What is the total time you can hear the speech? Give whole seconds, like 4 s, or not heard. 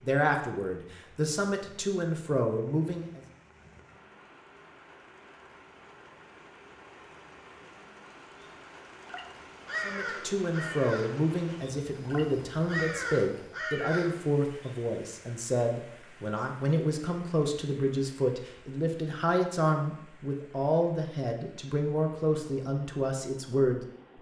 17 s.